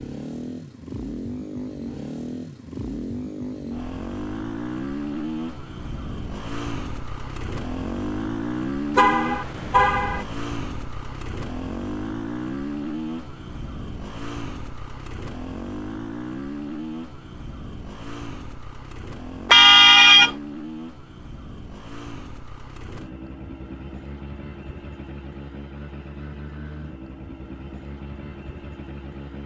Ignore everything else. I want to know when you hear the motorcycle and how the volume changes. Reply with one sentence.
You can hear the motorcycle from 0.0 to 29.4 s, getting quieter.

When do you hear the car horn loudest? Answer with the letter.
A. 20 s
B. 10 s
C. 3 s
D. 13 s
A.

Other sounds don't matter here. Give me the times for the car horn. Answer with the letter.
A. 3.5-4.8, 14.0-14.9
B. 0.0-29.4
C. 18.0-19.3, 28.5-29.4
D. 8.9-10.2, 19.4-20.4
D.